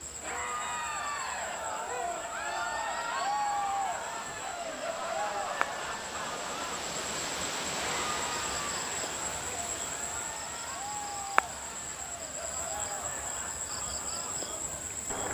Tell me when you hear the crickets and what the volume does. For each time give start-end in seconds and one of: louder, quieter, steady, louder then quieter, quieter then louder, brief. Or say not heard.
0.0-15.2 louder.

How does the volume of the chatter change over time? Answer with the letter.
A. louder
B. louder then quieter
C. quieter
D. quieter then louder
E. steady
C.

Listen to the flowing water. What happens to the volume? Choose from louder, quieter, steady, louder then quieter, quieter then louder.
louder then quieter.